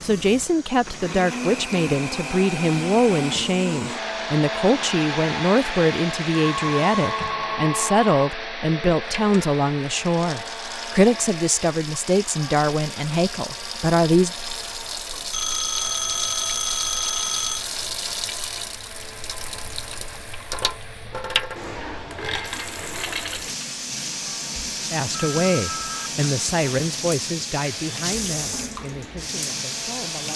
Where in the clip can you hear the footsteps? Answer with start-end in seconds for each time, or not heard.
not heard.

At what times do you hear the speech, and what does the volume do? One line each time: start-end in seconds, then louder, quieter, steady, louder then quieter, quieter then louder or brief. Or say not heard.
0.0-14.3 steady
24.9-30.3 quieter.